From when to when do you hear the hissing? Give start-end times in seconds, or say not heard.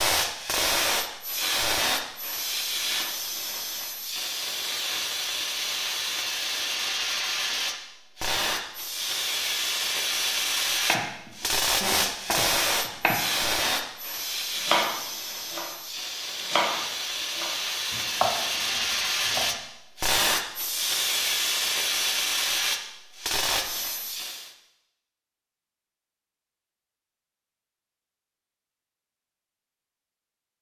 0.0-24.6.